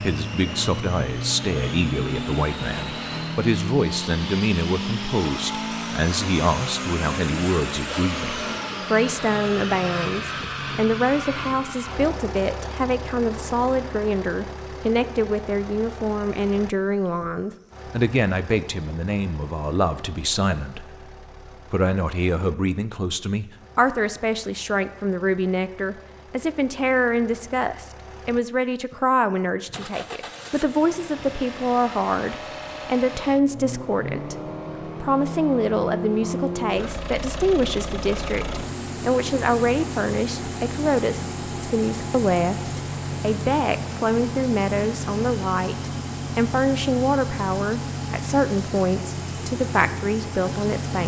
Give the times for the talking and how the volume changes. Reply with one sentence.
The talking can be heard from 0.0 to 51.0 s, at a steady volume.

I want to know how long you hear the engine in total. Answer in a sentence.
The engine can be heard for 51 seconds in total.